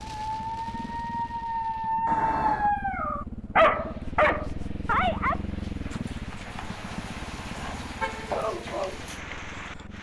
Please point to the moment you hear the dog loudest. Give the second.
4 s.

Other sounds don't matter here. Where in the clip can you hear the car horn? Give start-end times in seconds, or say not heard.
2.0-2.8, 6.5-8.4.